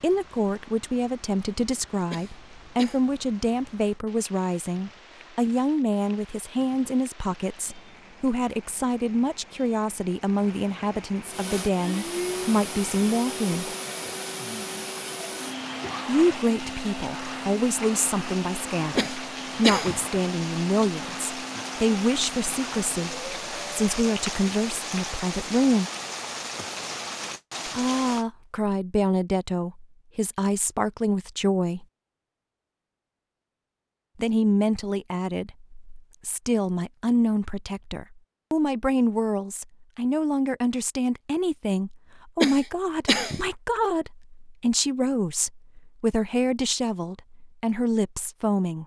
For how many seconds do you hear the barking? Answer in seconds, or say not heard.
not heard.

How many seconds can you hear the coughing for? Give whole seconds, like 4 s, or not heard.
3 s.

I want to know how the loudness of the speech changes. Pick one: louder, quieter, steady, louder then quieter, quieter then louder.
steady.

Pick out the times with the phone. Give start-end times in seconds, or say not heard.
not heard.